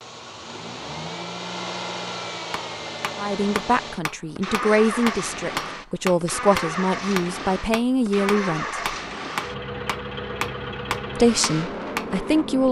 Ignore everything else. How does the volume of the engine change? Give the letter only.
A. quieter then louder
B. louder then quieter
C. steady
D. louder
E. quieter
C.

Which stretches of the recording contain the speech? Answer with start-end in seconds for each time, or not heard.
3.1-8.8, 11.2-12.6.